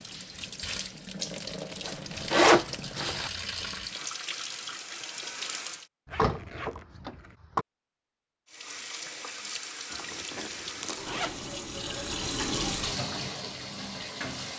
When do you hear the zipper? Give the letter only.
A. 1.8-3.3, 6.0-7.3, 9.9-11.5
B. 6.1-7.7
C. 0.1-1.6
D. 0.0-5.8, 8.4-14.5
A.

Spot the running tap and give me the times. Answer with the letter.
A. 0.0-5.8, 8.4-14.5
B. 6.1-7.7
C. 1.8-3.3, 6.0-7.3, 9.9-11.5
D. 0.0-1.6
A.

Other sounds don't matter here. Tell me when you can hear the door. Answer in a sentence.
The door can be heard from 6.1 to 7.7 s.